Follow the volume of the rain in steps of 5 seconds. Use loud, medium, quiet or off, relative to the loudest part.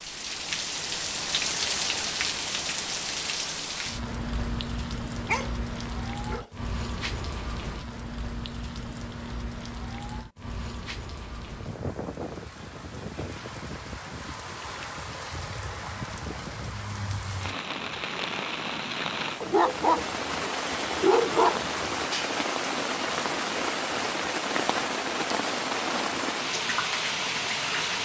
loud, medium, medium, medium, loud, loud.